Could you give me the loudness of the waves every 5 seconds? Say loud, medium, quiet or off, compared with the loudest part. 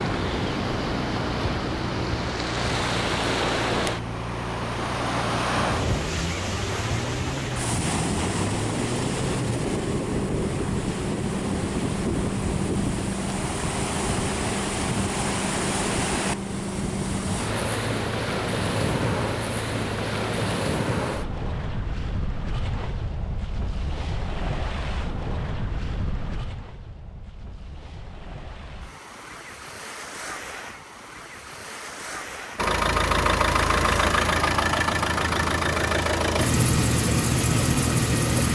loud, loud, loud, loud, loud, medium, medium, off.